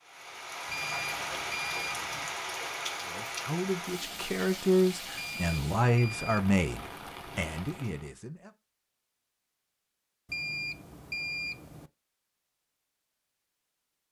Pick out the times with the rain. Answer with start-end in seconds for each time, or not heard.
0.0-8.2.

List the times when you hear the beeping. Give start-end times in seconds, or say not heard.
0.7-2.3, 5.2-6.4, 10.2-11.9.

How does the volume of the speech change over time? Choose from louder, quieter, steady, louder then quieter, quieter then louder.
louder then quieter.